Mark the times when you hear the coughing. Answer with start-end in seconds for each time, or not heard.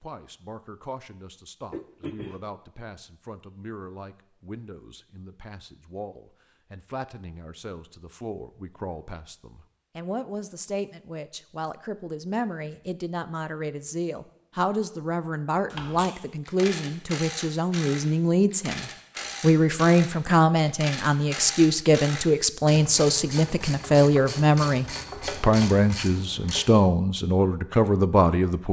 1.7-2.4.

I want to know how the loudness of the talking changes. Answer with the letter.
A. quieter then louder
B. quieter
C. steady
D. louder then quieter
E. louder
E.